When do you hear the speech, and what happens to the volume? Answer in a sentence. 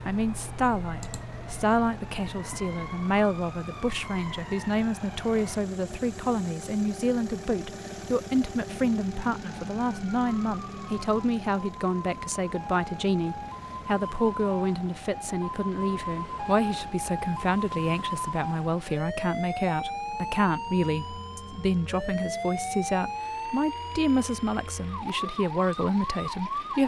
The speech can be heard from 0.1 to 26.8 s, at a steady volume.